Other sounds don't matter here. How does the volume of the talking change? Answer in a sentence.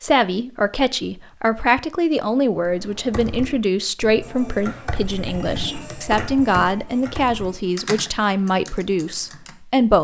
The volume of the talking stays about the same.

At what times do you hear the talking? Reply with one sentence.
The talking can be heard from 0.0 to 9.9 s.